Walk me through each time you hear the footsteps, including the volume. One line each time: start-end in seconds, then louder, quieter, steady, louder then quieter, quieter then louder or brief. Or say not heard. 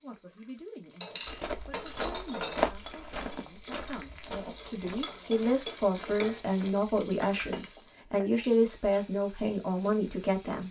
1.2-7.6 quieter.